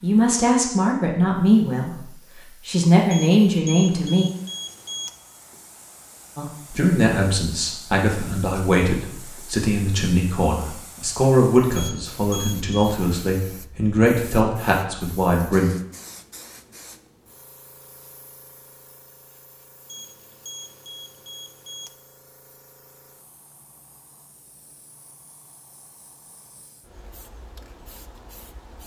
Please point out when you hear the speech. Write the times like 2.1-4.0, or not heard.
0.0-2.0, 2.6-4.2, 6.3-15.7.